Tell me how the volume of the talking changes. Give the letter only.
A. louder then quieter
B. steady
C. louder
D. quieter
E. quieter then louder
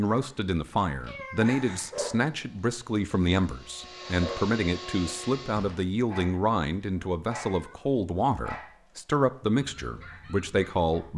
B.